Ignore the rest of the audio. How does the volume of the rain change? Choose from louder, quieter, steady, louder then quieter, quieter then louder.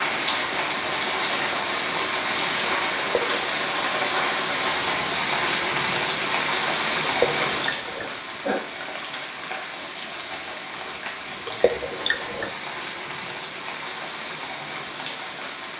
quieter.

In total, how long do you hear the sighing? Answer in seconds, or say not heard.
3 s.